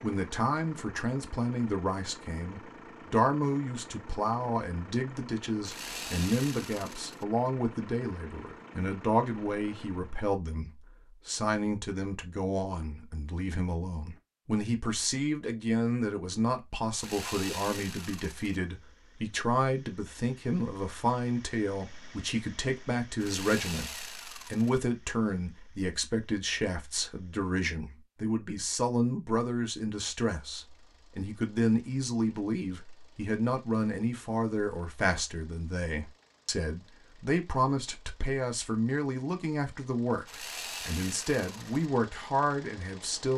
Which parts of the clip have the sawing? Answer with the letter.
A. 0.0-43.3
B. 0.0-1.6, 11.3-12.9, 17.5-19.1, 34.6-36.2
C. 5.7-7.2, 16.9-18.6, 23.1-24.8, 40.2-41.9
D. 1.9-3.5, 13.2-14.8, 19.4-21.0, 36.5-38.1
C.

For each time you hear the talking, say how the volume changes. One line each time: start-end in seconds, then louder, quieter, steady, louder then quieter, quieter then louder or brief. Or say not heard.
0.0-43.3 steady.